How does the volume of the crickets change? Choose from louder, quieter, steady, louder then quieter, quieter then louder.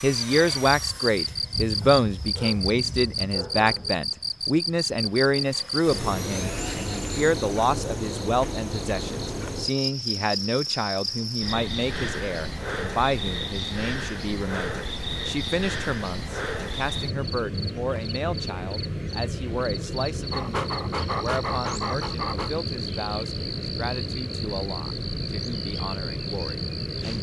steady.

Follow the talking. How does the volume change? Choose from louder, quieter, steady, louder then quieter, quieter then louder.
quieter.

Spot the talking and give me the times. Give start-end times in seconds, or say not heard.
0.0-27.1.